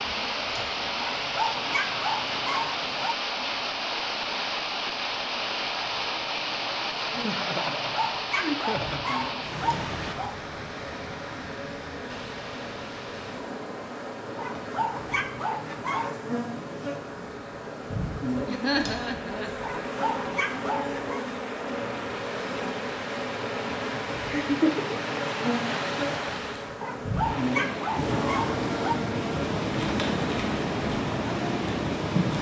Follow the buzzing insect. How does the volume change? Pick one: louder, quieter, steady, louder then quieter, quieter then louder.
louder.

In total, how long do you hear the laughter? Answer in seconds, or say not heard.
4 s.